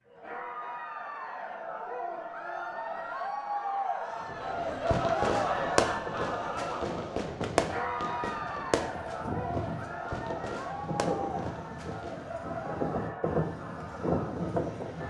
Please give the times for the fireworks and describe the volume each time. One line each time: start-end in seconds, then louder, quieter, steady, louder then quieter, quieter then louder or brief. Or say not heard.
4.3-12.3 quieter.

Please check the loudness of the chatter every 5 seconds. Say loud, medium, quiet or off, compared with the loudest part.
loud, loud, medium.